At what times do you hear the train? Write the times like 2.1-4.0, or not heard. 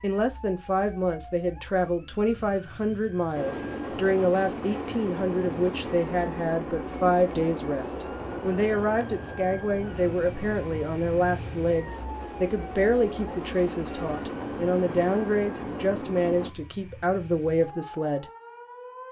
3.3-16.5.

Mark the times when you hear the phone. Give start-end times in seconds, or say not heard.
not heard.